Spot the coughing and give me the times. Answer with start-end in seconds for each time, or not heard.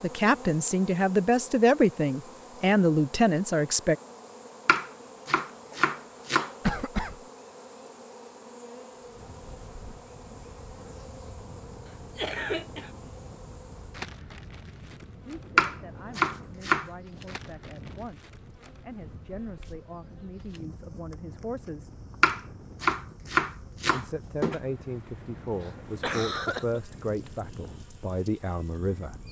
6.6-7.2, 12.2-12.9, 25.6-26.8.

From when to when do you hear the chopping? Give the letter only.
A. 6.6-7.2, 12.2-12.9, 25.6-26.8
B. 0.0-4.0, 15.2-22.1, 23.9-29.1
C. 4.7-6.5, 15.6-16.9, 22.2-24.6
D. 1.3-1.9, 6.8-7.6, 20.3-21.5
C.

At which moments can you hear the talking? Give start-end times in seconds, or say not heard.
0.0-4.0, 15.2-22.1, 23.9-29.1.